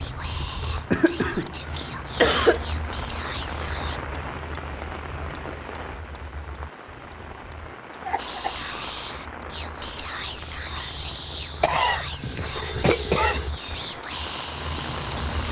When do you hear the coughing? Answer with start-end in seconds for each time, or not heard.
0.6-2.6, 8.1-8.6, 11.6-13.5.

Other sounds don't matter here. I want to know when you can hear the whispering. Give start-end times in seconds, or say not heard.
0.0-4.0, 8.2-15.4.